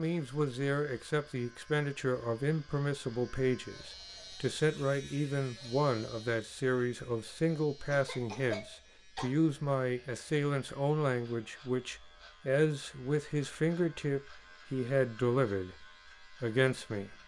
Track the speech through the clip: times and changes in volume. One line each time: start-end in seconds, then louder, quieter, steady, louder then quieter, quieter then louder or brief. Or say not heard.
0.0-17.1 steady.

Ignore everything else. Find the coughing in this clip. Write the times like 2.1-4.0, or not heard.
7.8-9.3.